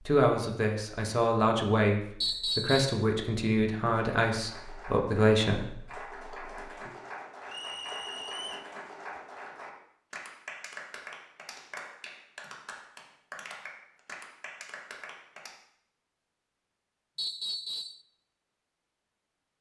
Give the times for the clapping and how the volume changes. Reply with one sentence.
The clapping can be heard from 3.8 to 15.6 s, at a steady volume.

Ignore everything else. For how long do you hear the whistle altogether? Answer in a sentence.
You can hear the whistle for 3 seconds altogether.